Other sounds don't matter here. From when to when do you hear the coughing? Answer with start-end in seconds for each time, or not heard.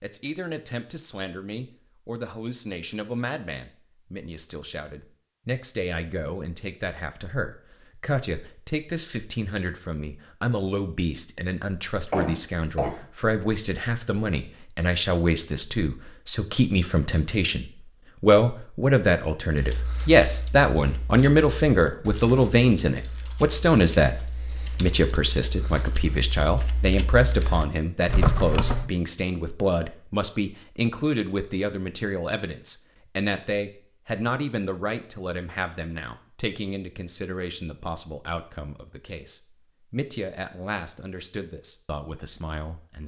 12.1-13.1.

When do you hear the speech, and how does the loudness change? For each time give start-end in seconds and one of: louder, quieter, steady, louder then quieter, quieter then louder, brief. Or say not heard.
0.0-43.0 louder then quieter.